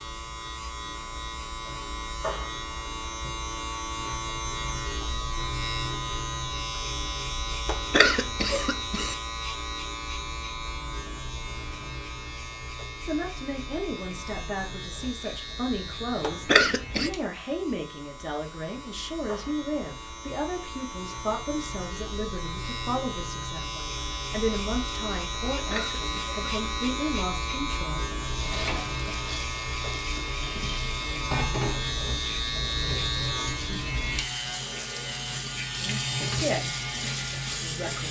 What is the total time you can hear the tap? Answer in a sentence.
You can hear the tap for 10 seconds altogether.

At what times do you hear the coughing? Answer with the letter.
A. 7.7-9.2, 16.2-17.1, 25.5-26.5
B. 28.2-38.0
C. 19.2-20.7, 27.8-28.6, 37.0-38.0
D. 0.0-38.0
A.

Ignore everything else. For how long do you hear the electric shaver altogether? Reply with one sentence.
The electric shaver can be heard for 38 seconds in total.